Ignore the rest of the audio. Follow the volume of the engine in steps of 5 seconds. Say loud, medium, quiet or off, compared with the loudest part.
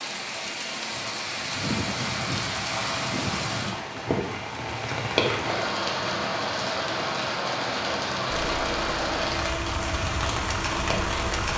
off, loud, loud.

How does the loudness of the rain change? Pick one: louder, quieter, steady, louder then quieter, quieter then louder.
steady.